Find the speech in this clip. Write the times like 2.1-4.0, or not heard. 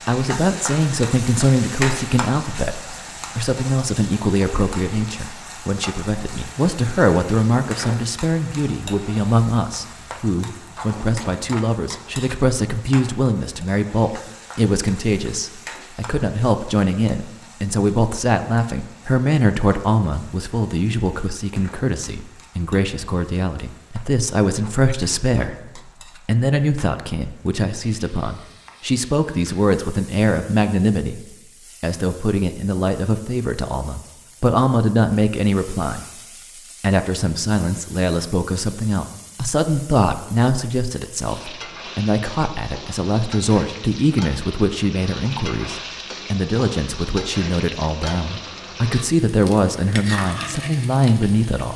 0.1-36.0, 36.8-51.7.